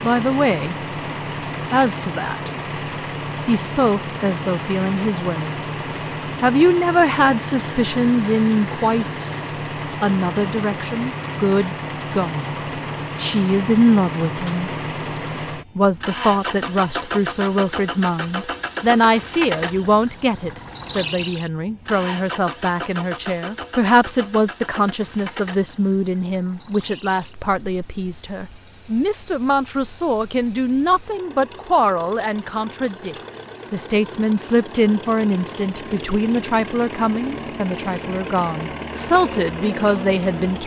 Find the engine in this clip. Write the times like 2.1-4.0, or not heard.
0.0-40.6.